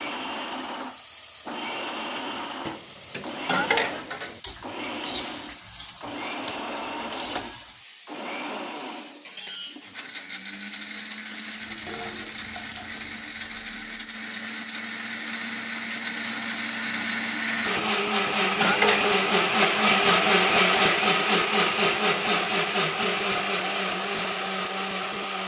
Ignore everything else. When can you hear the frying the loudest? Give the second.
7 s.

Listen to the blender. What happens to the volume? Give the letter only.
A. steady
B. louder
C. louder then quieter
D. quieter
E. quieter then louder
B.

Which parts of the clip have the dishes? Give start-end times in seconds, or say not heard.
2.6-4.4, 17.8-19.1.